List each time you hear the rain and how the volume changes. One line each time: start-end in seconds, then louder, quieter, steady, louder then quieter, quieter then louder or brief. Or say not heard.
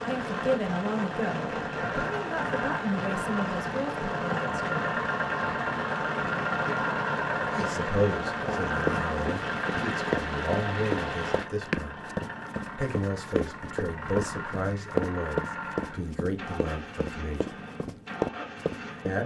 0.0-11.4 steady.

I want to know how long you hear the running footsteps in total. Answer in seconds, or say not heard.
11 s.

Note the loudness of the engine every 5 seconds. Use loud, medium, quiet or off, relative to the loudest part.
loud, loud, medium, medium.